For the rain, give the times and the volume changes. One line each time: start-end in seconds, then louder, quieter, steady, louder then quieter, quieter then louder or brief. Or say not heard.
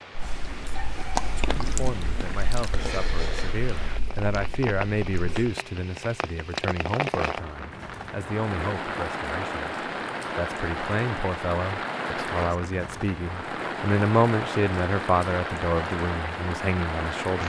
0.0-17.4 louder.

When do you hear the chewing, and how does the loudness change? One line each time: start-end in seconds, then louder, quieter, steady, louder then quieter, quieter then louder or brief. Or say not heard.
0.1-5.5 quieter.